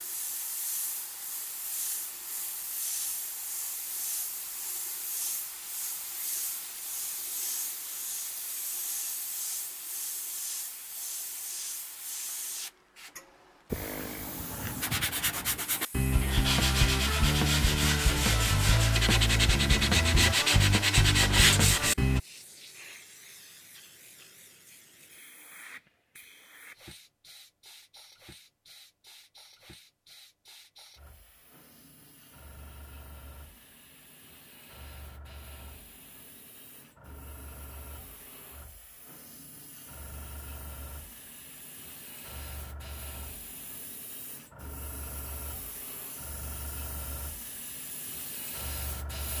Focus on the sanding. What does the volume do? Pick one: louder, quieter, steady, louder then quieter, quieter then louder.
louder.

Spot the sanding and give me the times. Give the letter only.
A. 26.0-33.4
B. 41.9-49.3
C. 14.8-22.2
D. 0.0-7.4
C.